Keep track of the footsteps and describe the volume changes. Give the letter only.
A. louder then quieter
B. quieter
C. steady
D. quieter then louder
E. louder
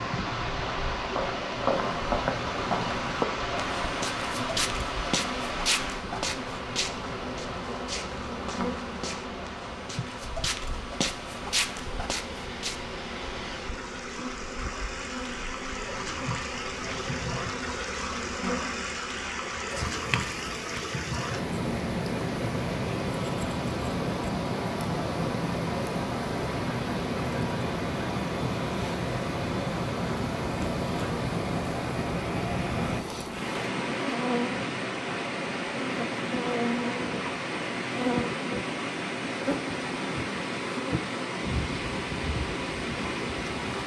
D.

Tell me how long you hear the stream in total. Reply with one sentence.
You can hear the stream for 44 seconds altogether.